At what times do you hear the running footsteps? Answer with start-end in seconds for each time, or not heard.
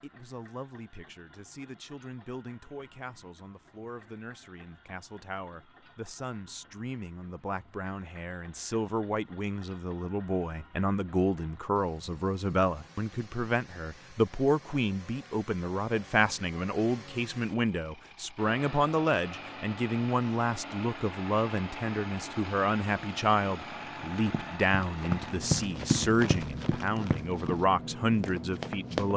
24.2-29.1.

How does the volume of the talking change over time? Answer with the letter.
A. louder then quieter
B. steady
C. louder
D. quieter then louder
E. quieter
C.